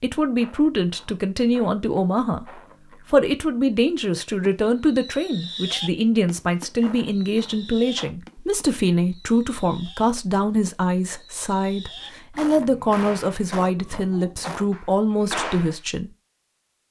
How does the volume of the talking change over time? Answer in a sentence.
The volume of the talking stays about the same.